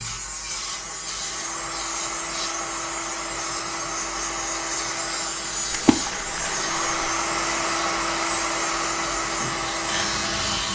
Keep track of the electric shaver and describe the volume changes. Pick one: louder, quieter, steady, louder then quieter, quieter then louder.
steady.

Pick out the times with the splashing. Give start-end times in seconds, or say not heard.
5.7-7.1.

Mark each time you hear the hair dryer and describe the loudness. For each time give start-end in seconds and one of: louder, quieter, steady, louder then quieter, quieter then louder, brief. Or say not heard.
0.0-10.7 louder.